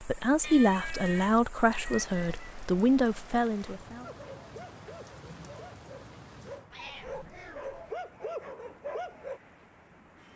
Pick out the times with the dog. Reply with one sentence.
The dog can be heard from 4.0 to 9.4 s.